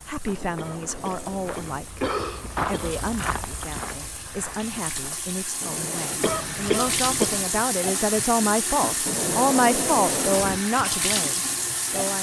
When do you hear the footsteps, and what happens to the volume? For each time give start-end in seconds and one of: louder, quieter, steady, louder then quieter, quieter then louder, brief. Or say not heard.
0.0-5.3 louder then quieter.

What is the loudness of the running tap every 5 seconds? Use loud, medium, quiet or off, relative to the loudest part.
quiet, loud, loud.